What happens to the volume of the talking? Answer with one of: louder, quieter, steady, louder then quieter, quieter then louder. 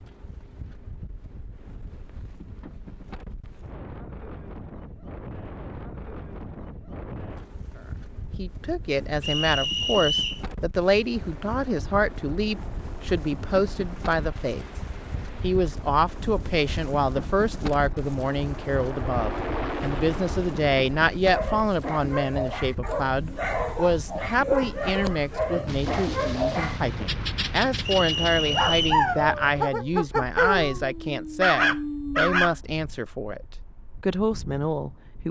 steady.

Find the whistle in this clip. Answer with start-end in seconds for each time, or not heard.
9.2-10.4, 27.9-29.1.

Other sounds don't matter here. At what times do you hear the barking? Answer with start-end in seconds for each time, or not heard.
21.2-32.5.